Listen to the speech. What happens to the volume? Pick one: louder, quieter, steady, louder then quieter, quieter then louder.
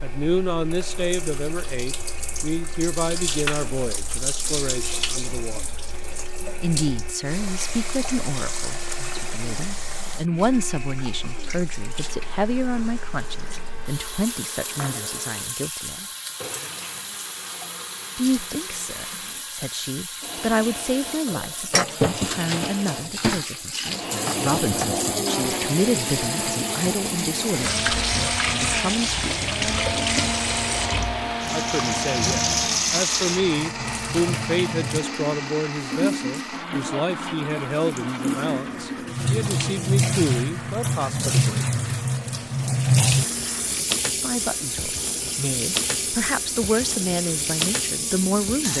steady.